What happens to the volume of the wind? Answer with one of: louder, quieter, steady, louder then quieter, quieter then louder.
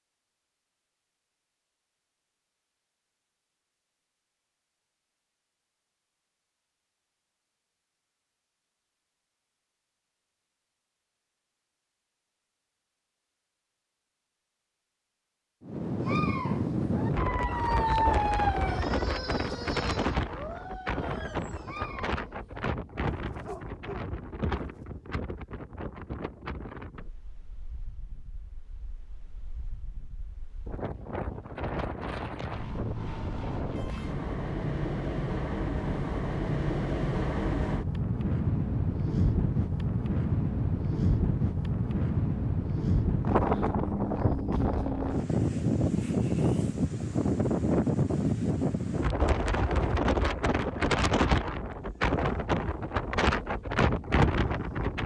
quieter then louder.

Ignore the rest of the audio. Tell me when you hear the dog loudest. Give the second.
18 s.